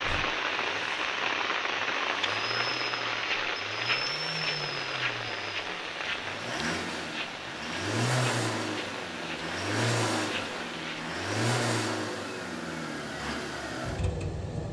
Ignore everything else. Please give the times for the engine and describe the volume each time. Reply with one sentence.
You can hear the engine from 0.0 to 14.6 s, getting louder.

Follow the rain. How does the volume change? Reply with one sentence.
The volume of the rain goes down.